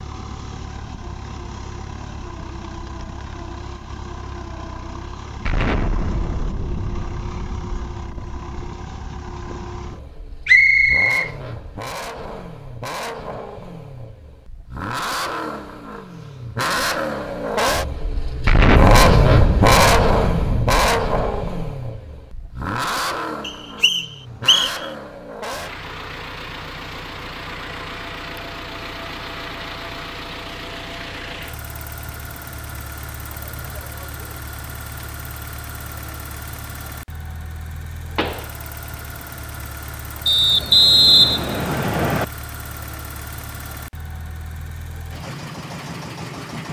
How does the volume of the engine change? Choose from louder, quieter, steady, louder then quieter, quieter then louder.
louder then quieter.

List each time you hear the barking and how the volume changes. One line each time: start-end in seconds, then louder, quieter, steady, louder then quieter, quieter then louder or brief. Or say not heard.
not heard.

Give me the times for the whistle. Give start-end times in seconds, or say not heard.
10.4-11.3, 23.4-24.9, 40.2-42.2.